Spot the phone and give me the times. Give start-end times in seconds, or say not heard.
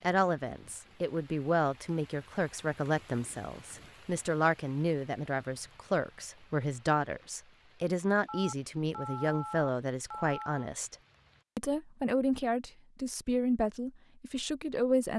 8.2-10.7.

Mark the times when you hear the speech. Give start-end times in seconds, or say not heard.
0.0-10.9, 11.6-15.1.